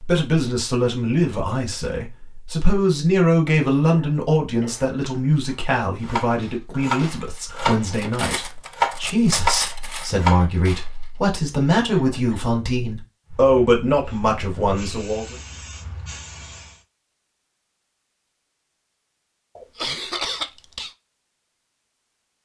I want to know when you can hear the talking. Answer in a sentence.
The talking can be heard from 0.0 to 15.3 s.